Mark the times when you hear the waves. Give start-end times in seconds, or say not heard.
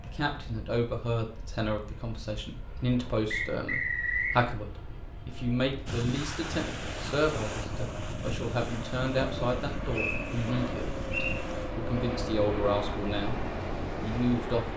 5.8-14.7.